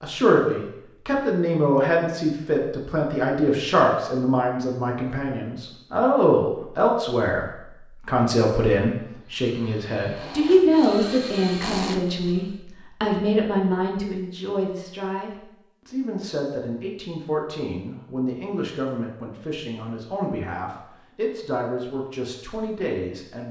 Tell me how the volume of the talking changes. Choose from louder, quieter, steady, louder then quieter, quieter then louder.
quieter.